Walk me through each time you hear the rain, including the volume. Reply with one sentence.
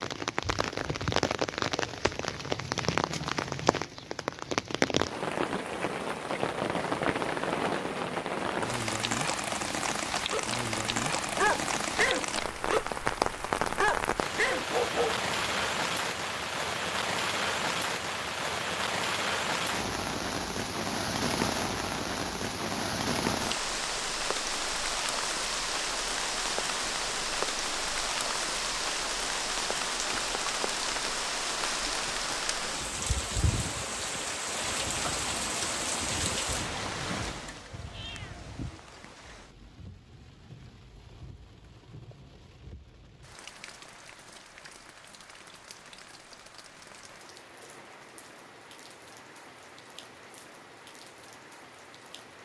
You can hear the rain from 0.0 to 52.4 s, getting quieter.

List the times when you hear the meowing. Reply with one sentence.
You can hear the meowing from 37.7 to 38.8 s.